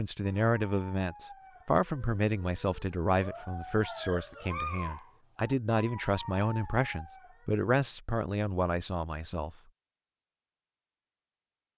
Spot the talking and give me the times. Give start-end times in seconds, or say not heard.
0.0-9.6.